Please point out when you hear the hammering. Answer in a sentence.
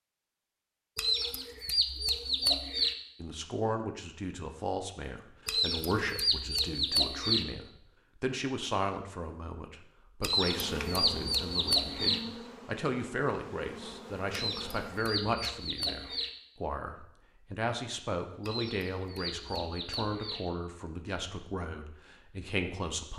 The hammering can't be heard in this clip.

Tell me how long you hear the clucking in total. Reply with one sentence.
The clucking can be heard for 10 seconds in total.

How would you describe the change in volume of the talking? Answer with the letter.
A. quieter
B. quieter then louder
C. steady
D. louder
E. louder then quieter
C.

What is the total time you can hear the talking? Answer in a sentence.
The talking can be heard for 20 seconds in total.